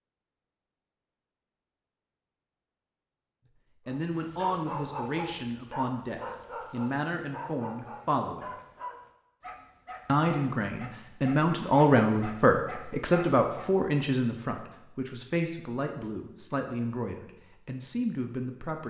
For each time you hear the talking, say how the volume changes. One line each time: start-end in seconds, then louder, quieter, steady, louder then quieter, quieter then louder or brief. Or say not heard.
3.9-8.6 steady
10.1-18.8 quieter.